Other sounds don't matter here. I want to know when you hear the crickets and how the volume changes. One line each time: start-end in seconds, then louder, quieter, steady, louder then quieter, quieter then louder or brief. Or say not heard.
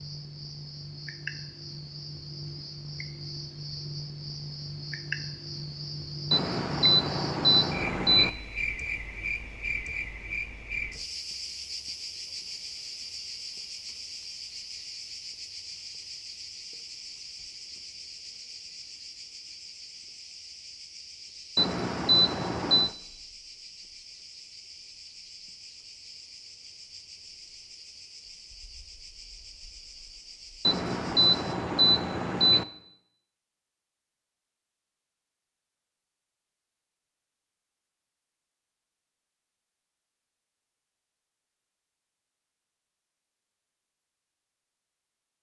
0.0-31.6 quieter.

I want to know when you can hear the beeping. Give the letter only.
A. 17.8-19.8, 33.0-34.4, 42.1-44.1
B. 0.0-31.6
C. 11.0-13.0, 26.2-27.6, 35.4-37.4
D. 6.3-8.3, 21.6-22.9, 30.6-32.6
D.